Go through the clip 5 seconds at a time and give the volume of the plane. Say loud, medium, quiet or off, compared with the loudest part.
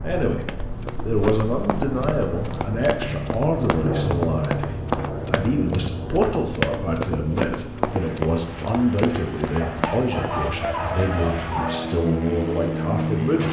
loud, medium, loud.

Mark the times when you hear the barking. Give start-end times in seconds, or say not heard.
9.6-11.8.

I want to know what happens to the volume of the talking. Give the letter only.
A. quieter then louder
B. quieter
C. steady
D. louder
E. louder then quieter
C.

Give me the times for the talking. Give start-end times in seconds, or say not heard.
0.0-13.4.